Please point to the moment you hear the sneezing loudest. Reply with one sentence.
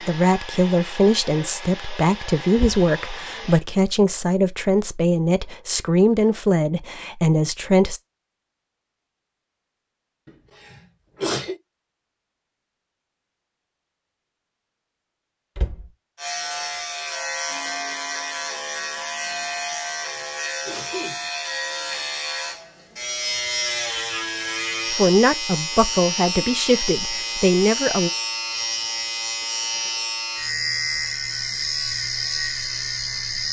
The volume of the sneezing peaks at 11 seconds.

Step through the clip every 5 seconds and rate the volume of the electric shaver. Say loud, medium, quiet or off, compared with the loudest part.
off, off, off, loud, loud, loud, loud.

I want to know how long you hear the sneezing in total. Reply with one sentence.
You can hear the sneezing for 3 seconds altogether.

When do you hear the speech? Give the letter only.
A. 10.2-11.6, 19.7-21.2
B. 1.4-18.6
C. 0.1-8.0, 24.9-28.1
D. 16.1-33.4
C.